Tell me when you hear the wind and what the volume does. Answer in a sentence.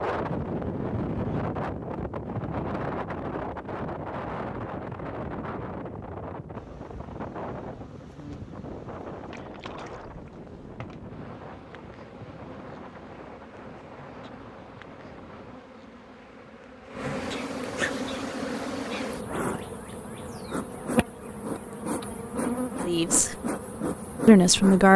You can hear the wind from 0.0 to 15.6 s, getting quieter.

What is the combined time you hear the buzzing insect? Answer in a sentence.
You can hear the buzzing insect for 18 seconds altogether.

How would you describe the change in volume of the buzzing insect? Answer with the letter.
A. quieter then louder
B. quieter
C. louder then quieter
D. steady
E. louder
E.